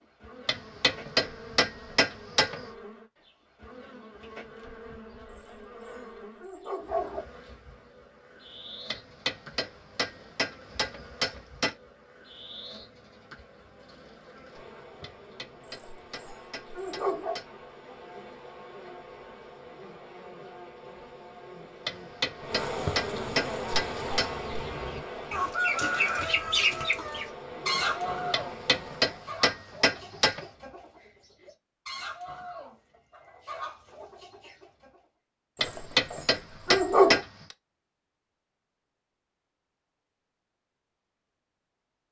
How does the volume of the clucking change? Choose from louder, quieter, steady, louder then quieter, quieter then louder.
quieter.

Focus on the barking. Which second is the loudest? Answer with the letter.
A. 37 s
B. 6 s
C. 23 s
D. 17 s
A.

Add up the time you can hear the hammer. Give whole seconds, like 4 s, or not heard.
14 s.